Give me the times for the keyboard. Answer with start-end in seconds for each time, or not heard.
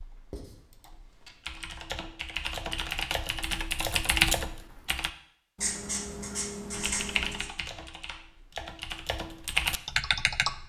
0.0-5.1, 6.7-10.6.